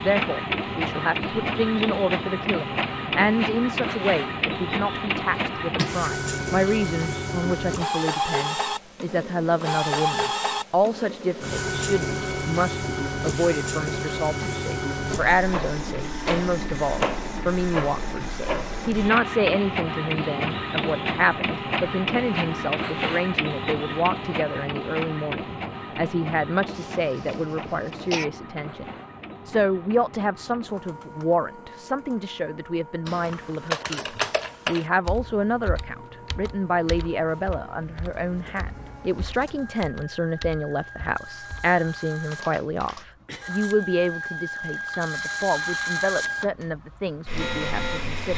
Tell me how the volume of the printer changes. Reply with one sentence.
The loudness of the printer goes down, then up.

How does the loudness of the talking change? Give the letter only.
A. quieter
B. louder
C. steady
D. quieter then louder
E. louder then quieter
C.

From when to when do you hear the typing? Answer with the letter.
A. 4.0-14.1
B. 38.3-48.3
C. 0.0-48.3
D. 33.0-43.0
D.